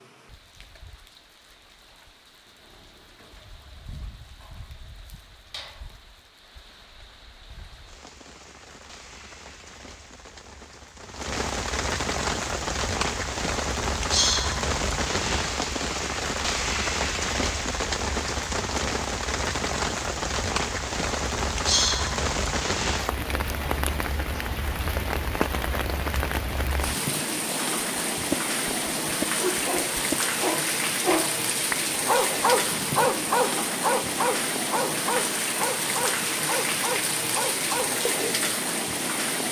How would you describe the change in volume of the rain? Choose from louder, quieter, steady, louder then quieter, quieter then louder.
louder.